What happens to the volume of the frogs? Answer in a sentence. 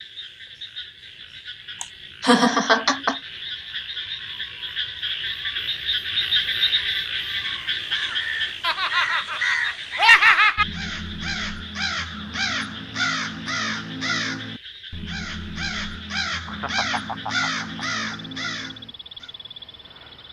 The loudness of the frogs goes up, then down.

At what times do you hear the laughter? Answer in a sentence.
You can hear the laughter from 1.8 to 3.1 s, from 8.6 to 10.7 s and from 16.4 to 18.1 s.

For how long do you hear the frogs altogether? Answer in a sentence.
You can hear the frogs for 20 seconds altogether.